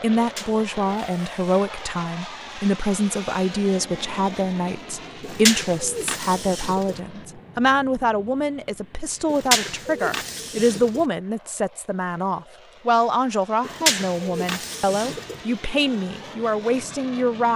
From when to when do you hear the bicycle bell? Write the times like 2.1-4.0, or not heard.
not heard.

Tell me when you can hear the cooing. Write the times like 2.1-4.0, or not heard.
0.1-1.9, 5.2-7.0, 9.3-11.1, 13.7-15.4.